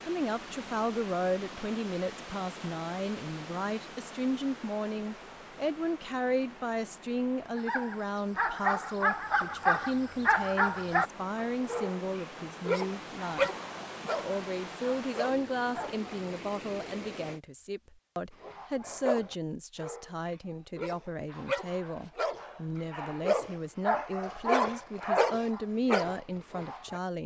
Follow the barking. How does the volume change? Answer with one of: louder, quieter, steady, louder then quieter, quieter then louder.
quieter then louder.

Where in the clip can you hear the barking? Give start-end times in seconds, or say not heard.
7.5-16.1, 18.4-27.0.